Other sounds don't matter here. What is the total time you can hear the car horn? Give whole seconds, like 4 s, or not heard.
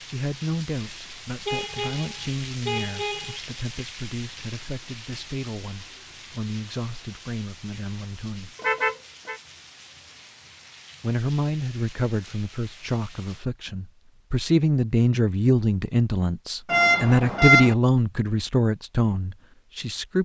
4 s.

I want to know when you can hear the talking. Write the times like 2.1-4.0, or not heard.
0.0-8.6, 11.0-20.1.